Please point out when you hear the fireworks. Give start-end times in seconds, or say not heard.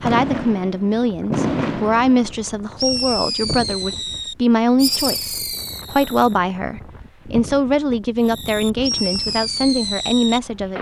0.0-6.3, 8.2-10.7.